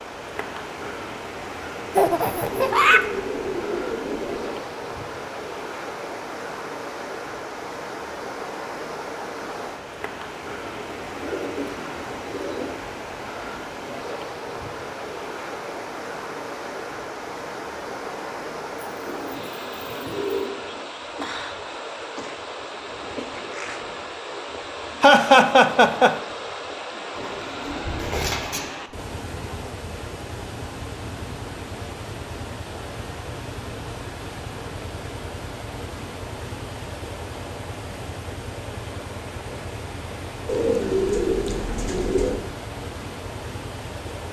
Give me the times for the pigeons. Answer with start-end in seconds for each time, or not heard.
2.5-4.7, 10.8-12.8, 18.9-20.6, 27.1-28.7, 40.5-42.4.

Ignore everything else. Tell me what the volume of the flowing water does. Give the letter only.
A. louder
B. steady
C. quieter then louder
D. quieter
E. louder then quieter
B.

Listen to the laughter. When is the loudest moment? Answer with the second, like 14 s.
25 s.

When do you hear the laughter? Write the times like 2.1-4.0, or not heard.
1.9-3.0, 25.0-26.1.